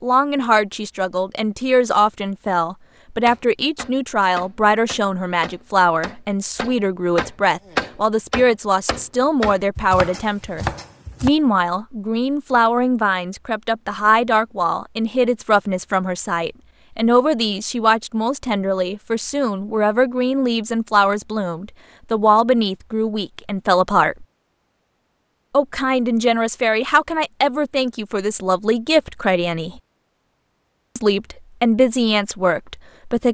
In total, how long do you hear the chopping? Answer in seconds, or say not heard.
8 s.